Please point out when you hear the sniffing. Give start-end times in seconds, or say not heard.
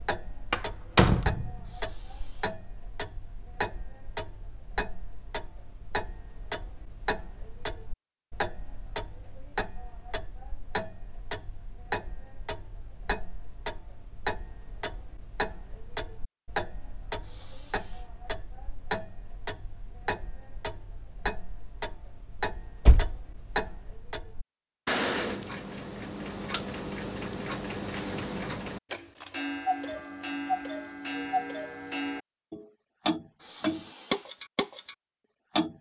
1.6-2.5, 17.2-18.1, 33.4-34.3.